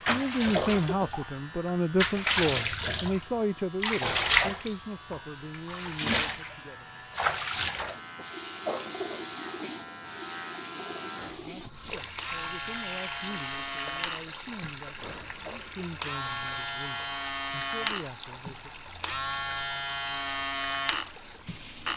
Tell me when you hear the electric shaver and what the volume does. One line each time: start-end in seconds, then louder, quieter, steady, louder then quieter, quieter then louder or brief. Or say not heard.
0.0-21.9 louder.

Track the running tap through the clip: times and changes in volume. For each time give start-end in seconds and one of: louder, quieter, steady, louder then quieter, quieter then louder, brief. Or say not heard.
0.0-21.9 quieter.